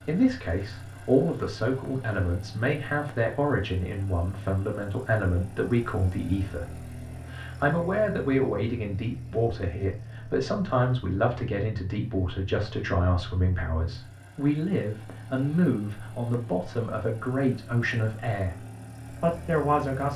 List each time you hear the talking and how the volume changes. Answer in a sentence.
You can hear the talking from 0.1 to 20.1 s, at a steady volume.